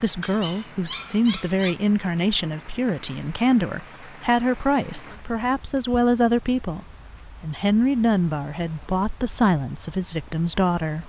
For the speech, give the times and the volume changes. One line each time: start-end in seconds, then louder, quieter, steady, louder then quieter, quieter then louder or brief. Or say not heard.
0.0-11.0 steady.